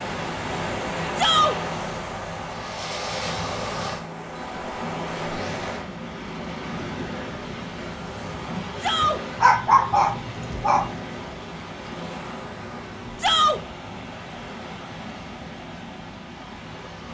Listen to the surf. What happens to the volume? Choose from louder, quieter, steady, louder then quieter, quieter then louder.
quieter.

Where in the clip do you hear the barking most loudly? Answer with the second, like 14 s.
10 s.